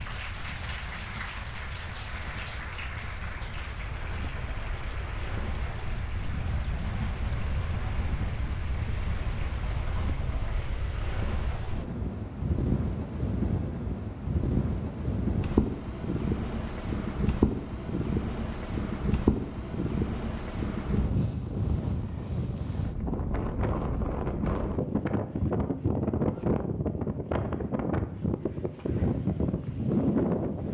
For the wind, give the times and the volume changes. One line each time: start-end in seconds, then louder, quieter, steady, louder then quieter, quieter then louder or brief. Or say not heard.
0.0-30.6 louder.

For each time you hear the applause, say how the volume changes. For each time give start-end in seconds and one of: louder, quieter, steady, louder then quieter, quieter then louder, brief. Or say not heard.
0.0-9.7 quieter.